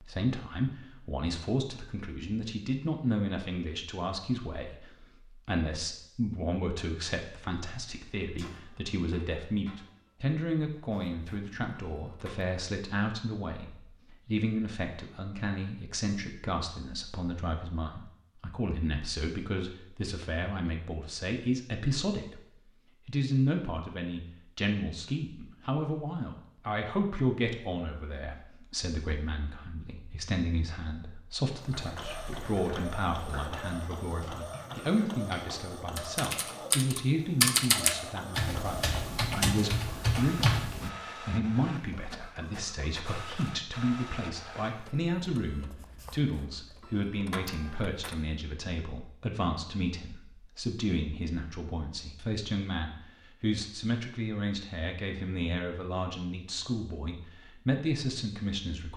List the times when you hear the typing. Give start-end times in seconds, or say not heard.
31.6-40.9.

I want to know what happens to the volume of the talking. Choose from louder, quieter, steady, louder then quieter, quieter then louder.
steady.